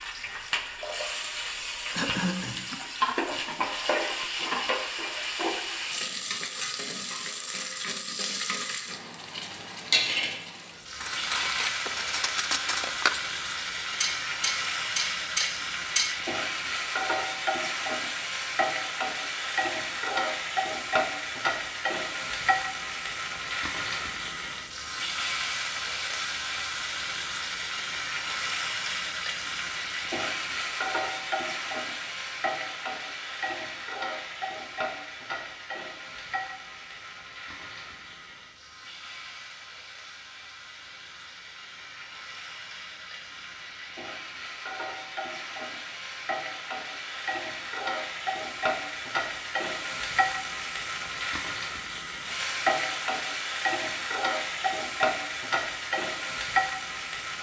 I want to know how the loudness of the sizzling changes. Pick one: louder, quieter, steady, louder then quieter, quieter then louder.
quieter then louder.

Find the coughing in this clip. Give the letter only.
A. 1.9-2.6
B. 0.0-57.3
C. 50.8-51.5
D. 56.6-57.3
A.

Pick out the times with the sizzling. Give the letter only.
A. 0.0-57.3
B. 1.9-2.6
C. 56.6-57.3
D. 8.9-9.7
A.